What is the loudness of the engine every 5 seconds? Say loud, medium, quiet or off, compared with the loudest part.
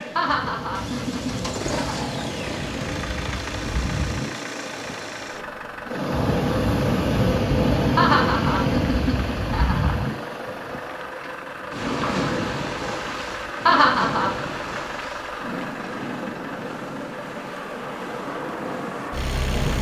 loud, medium, loud, loud.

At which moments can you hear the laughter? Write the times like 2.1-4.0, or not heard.
0.1-2.0, 8.0-10.1, 13.7-14.3.